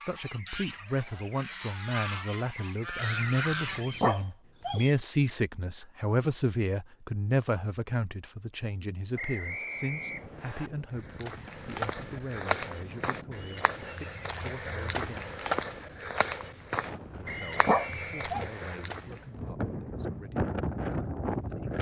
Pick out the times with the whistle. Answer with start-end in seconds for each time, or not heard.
3.9-5.0, 9.2-10.7, 17.2-18.8.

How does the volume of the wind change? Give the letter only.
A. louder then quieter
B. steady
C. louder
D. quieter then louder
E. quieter
C.